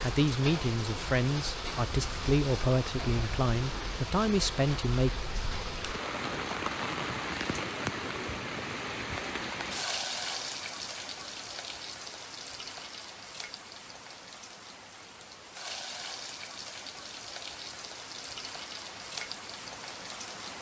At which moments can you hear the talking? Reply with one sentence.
You can hear the talking from 0.0 to 5.1 s.